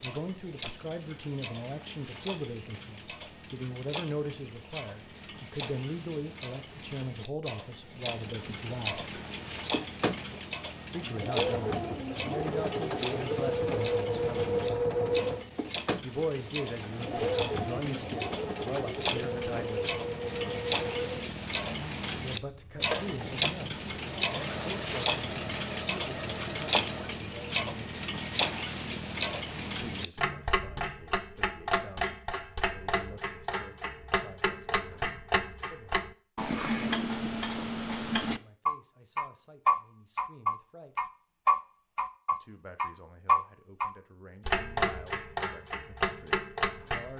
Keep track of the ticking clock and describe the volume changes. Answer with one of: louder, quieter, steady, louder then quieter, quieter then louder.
louder.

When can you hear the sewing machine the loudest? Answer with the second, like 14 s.
15 s.